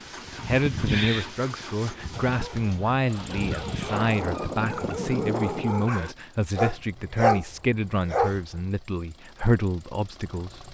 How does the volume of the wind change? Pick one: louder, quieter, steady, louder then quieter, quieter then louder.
quieter then louder.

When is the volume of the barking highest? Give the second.
7 s.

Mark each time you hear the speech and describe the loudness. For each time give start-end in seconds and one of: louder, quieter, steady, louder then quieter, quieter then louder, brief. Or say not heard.
0.5-10.6 steady.